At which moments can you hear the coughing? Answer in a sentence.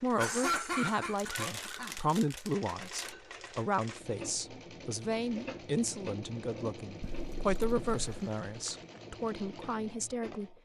The coughing can be heard from 0.1 to 1.9 s and from 7.0 to 8.3 s.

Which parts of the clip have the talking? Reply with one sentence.
The talking can be heard from 0.0 to 10.6 s.